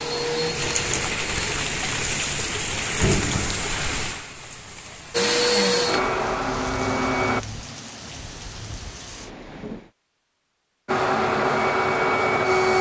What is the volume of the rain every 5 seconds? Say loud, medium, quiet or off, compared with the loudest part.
loud, medium, off.